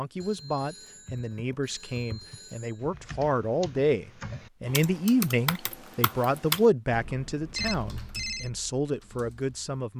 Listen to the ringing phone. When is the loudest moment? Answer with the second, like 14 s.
8 s.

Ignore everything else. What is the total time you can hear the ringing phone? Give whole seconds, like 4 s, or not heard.
4 s.